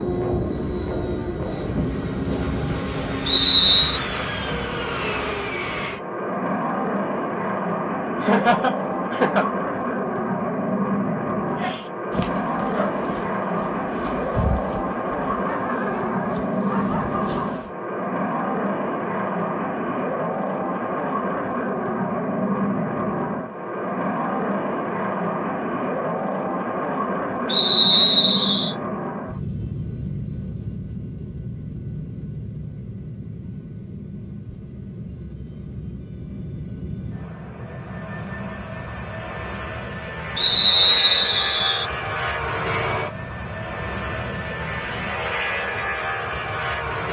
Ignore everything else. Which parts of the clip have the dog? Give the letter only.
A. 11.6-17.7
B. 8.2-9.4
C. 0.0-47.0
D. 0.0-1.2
A.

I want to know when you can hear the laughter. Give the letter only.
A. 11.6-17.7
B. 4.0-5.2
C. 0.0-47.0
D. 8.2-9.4
D.